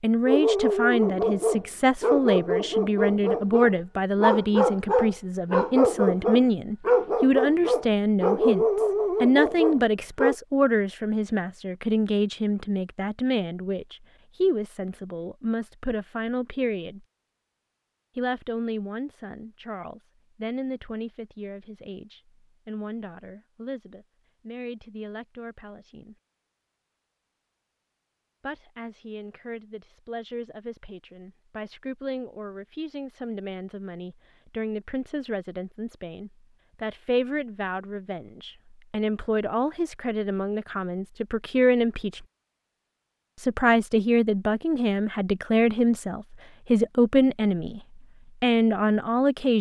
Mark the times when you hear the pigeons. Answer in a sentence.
The pigeons can't be heard in this clip.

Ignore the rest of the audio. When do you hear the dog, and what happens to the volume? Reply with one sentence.
You can hear the dog from 0.2 to 10.3 s, at a steady volume.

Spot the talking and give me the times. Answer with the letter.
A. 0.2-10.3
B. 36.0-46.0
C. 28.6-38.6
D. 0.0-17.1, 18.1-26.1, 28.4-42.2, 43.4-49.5
D.